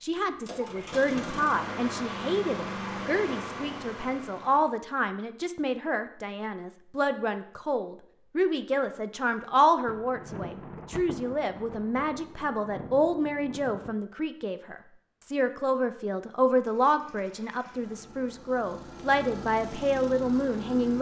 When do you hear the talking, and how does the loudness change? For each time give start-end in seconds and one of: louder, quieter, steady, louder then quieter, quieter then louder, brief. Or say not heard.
0.0-20.9 steady.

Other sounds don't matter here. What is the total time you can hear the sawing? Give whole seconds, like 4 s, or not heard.
not heard.